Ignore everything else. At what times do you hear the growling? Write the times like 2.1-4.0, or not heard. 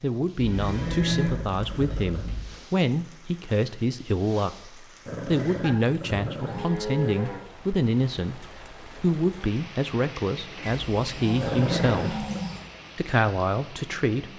0.8-2.4, 5.0-7.2, 11.4-12.4.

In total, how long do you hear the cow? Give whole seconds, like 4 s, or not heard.
6 s.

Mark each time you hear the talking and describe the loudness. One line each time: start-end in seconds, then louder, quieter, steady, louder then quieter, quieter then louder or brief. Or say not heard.
0.0-12.2 steady
12.9-14.3 brief.